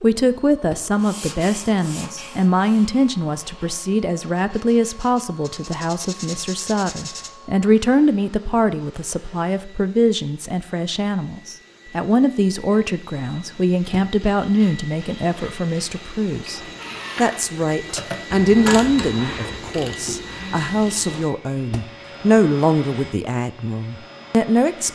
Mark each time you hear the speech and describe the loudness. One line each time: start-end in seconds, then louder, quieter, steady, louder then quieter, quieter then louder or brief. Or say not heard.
0.0-24.8 steady.